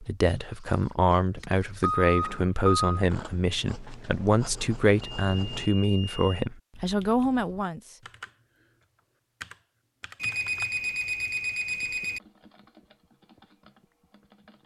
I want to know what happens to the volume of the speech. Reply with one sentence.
The volume of the speech stays about the same.